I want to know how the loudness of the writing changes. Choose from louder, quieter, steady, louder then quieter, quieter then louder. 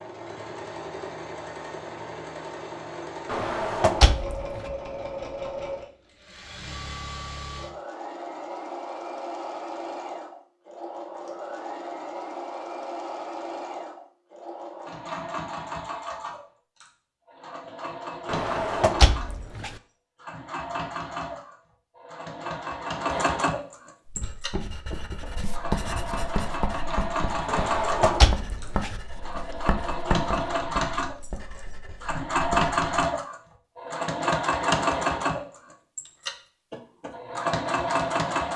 quieter.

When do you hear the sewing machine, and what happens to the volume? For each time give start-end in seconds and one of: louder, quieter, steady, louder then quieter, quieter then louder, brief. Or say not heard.
0.0-38.5 louder.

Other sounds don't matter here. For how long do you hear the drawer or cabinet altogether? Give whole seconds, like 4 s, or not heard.
4 s.